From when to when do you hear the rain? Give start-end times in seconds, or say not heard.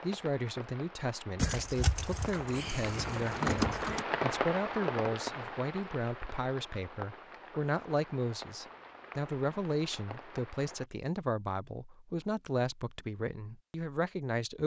0.0-10.8.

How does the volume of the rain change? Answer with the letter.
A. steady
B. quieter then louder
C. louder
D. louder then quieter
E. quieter
D.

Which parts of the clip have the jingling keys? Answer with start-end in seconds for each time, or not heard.
1.4-4.0.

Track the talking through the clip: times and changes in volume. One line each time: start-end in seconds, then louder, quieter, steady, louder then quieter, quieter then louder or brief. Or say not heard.
0.0-14.6 steady.